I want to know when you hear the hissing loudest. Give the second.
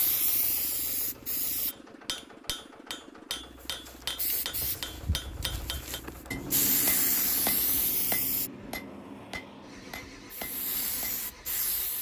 7 s.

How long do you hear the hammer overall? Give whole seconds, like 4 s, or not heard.
10 s.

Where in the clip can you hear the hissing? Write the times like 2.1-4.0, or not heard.
0.0-1.8, 3.4-8.5, 10.3-11.9.